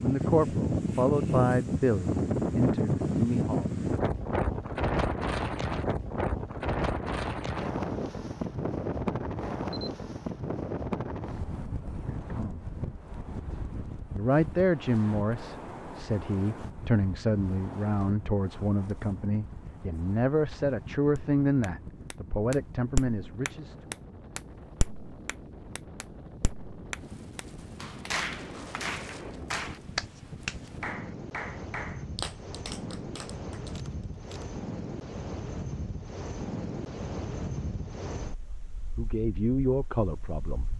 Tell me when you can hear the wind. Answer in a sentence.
The wind can be heard from 0.0 to 40.7 s.